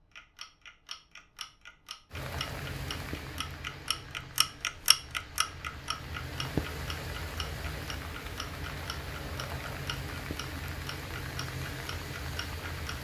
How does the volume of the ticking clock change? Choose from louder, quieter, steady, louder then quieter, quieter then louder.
louder then quieter.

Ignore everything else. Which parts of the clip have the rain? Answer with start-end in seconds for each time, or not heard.
2.1-12.9.